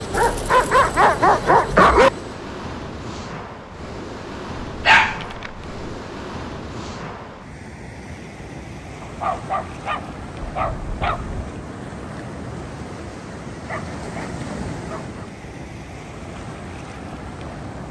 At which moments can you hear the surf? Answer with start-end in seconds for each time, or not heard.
0.0-17.8.